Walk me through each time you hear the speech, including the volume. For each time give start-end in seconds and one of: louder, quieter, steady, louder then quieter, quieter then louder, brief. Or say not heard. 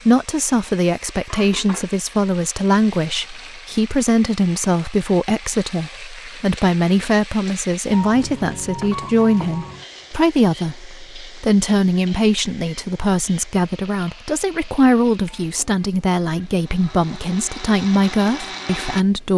0.1-19.3 steady.